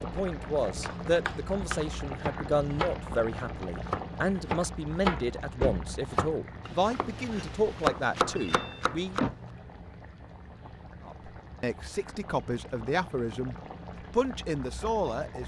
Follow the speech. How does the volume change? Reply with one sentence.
The loudness of the speech stays about the same.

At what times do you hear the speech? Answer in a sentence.
The speech can be heard from 0.0 to 9.2 s and from 11.1 to 15.4 s.